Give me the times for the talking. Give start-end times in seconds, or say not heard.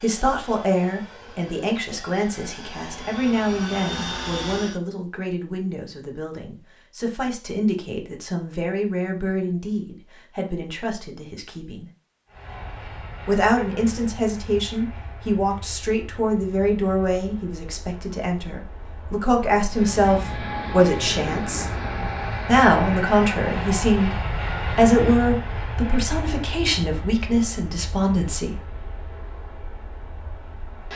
0.0-11.8, 13.2-21.6, 22.4-24.1, 24.8-28.6.